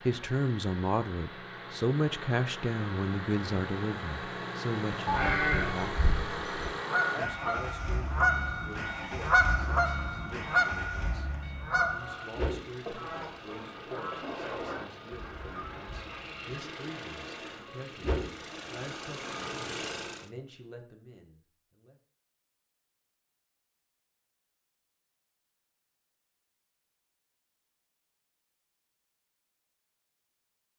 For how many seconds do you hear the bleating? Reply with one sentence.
The bleating can be heard for 2 seconds in total.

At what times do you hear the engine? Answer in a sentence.
You can hear the engine from 0.0 to 20.3 s.